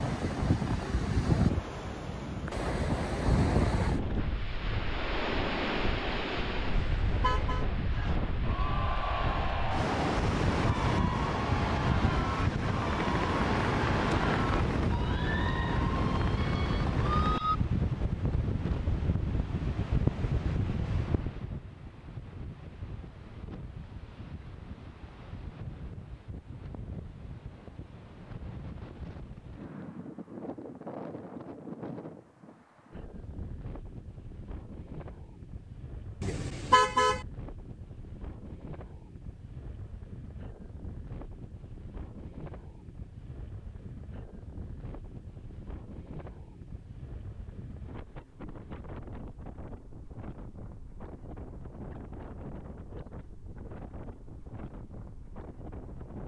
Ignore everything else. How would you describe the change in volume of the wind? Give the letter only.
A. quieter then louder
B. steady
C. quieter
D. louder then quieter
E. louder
C.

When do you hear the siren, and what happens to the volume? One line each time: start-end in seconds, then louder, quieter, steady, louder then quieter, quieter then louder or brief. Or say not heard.
not heard.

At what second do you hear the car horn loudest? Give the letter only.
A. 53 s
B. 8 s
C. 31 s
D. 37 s
D.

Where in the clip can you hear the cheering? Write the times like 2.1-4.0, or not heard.
7.9-17.6.